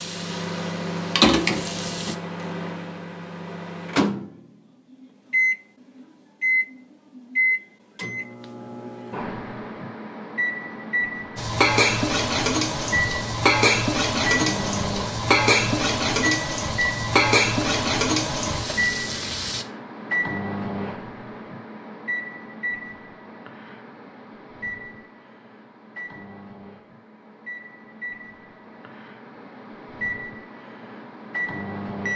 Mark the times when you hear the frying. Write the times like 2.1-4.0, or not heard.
0.0-2.1, 11.3-19.6.